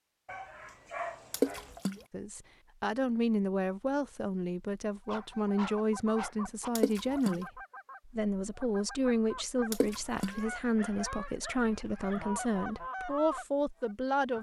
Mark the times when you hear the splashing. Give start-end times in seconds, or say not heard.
1.3-2.0, 6.8-7.4, 9.7-10.4.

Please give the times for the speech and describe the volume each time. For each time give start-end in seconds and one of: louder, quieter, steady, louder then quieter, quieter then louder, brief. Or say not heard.
2.1-14.3 steady.